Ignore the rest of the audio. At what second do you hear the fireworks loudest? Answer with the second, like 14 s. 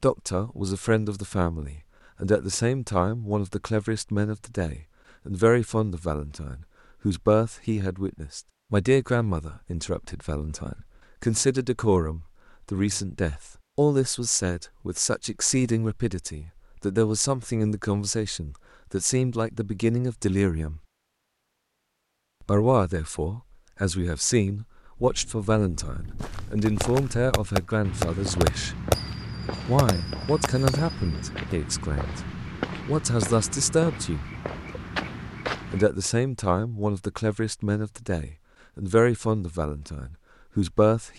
29 s.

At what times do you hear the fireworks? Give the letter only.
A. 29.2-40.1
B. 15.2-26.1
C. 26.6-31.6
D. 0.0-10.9
C.